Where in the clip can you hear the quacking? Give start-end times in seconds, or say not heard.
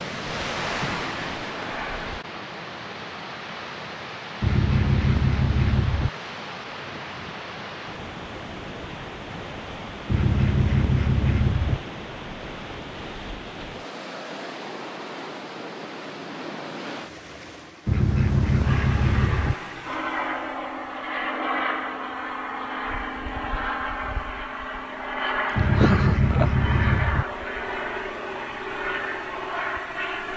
4.4-6.1, 10.1-11.8, 17.9-19.6, 25.6-27.2.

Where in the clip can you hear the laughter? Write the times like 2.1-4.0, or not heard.
25.8-26.6.